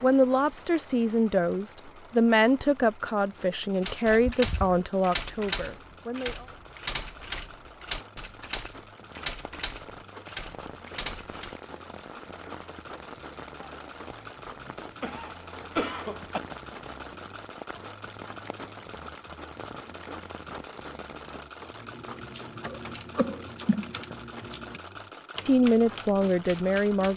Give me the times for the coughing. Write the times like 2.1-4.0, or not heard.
4.3-4.8, 14.4-16.4, 22.6-24.1.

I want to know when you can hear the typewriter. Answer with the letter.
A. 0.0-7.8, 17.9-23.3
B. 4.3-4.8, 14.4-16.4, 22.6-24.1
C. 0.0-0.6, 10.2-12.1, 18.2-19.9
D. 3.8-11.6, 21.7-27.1
D.